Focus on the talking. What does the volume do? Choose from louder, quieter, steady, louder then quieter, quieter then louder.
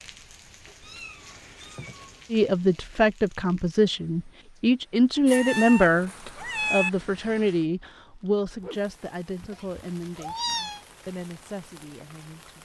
quieter.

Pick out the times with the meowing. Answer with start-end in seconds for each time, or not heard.
0.8-2.2, 5.2-6.9, 9.5-10.8.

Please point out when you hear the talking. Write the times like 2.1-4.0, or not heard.
2.3-6.1, 6.7-12.6.